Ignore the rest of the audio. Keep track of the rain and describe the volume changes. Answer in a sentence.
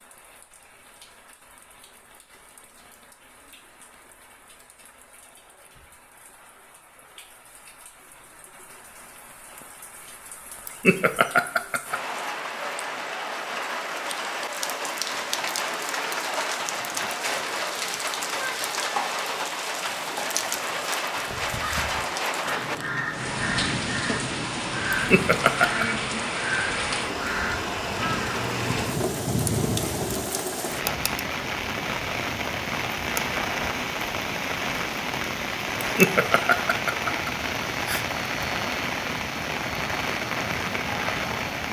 The loudness of the rain goes up.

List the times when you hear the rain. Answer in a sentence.
The rain can be heard from 0.0 to 41.6 s.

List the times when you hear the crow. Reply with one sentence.
You can hear the crow from 21.1 to 30.4 s.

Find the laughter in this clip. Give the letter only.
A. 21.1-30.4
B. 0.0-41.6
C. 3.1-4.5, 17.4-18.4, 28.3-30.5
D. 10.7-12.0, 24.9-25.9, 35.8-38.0
D.